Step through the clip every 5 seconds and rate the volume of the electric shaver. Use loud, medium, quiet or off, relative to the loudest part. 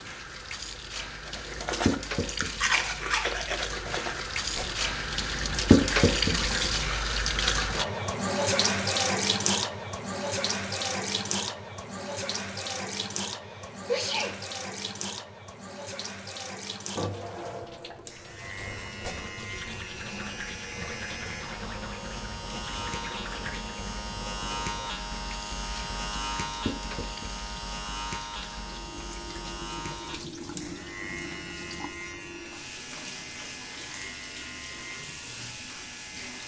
off, off, off, medium, loud, loud, medium, medium.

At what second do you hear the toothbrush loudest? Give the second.
3 s.